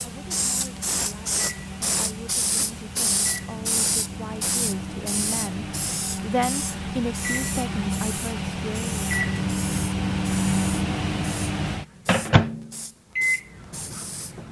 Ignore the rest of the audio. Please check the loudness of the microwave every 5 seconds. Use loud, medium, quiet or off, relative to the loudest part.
medium, loud, loud.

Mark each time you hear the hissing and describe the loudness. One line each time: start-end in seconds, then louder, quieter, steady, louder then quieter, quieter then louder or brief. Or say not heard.
0.0-14.4 quieter.